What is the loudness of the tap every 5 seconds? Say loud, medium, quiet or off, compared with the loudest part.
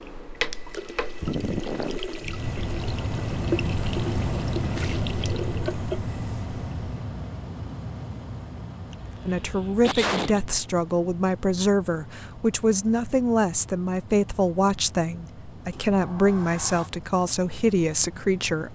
loud, loud, off, off.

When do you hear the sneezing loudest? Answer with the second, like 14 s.
10 s.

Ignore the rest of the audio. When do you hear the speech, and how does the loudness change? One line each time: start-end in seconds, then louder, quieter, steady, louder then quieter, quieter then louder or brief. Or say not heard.
9.2-18.7 steady.